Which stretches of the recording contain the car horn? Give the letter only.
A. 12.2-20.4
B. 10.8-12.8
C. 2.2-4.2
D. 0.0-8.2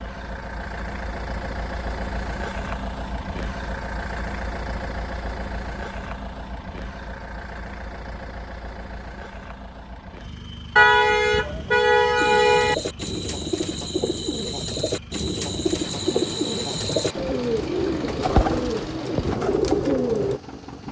B.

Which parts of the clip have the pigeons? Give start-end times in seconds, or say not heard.
12.2-20.4.